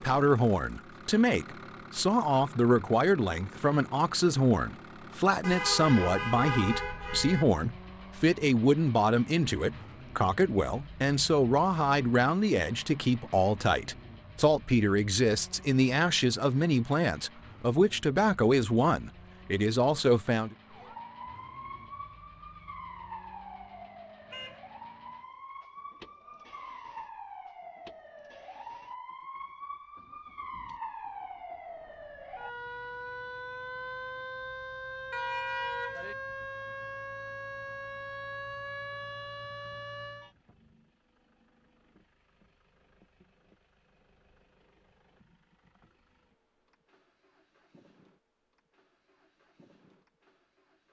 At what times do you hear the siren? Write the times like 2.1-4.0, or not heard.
20.6-40.3.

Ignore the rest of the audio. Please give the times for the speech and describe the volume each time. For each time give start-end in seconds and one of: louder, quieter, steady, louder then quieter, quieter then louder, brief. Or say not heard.
0.0-20.6 steady.